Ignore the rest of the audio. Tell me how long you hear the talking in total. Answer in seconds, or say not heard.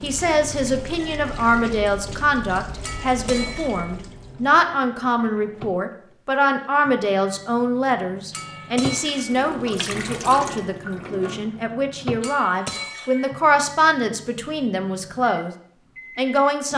16 s.